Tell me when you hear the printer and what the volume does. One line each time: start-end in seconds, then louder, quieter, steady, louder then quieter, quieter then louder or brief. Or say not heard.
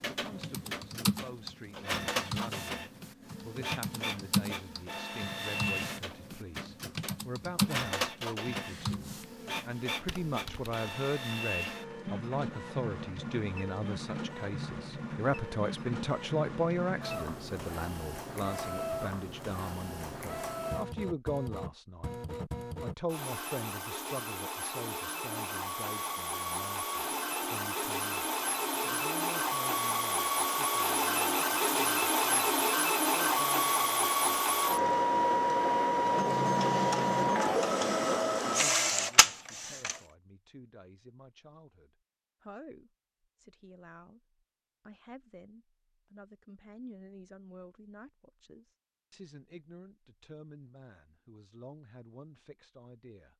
0.0-40.0 louder.